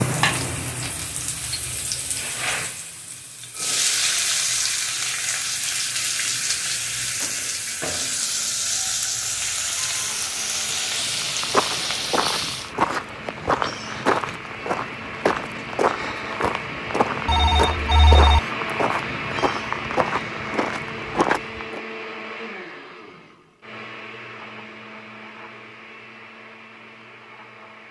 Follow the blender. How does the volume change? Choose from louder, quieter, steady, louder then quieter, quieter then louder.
louder then quieter.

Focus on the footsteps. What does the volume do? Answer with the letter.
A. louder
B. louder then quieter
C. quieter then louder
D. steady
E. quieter
D.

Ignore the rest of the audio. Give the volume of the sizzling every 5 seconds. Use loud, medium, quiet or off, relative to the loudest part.
loud, loud, loud, off, off, off.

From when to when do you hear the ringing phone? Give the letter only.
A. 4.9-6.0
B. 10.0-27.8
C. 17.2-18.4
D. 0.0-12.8
C.